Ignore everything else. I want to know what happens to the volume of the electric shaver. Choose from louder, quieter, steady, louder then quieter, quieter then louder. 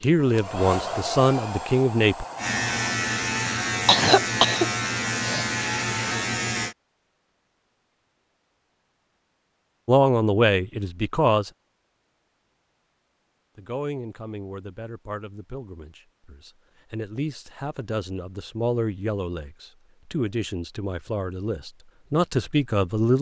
steady.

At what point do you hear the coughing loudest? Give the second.
4 s.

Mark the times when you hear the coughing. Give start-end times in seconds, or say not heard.
3.5-5.5.